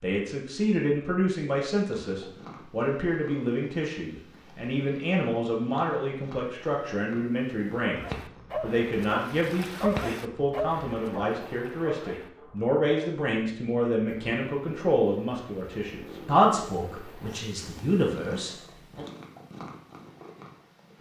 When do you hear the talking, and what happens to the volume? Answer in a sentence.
The talking can be heard from 0.0 to 19.1 s, at a steady volume.